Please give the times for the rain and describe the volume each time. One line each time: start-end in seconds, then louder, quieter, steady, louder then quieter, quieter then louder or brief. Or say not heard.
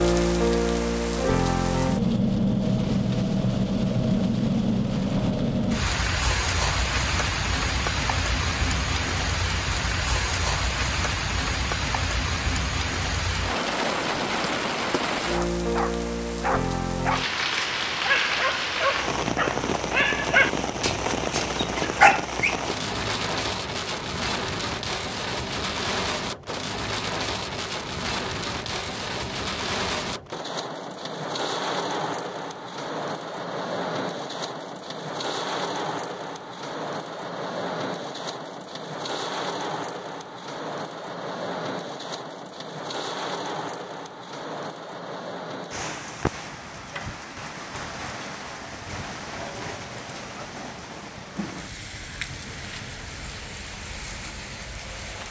0.0-55.2 quieter.